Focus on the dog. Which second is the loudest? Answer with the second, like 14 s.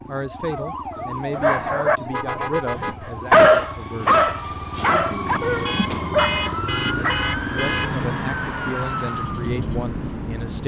3 s.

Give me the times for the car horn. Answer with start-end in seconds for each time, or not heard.
2.0-3.1, 5.7-8.2.